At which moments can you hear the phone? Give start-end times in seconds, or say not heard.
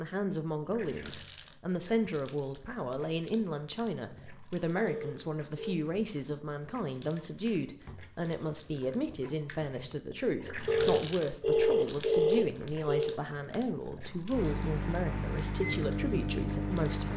4.8-5.8, 10.7-13.2.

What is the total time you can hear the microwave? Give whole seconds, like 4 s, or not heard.
3 s.